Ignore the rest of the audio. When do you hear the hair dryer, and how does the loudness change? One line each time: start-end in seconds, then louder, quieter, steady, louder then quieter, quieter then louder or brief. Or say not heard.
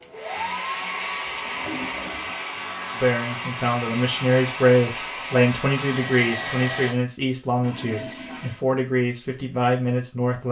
0.0-7.0 steady.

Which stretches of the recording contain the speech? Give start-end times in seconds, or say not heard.
3.0-10.4.